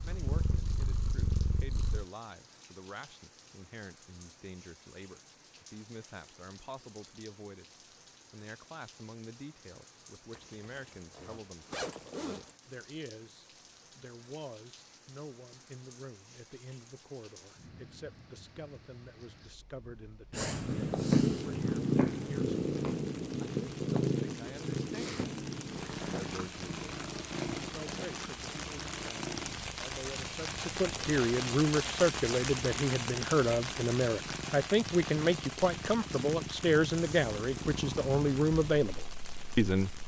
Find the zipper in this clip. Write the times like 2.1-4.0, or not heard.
10.3-12.6.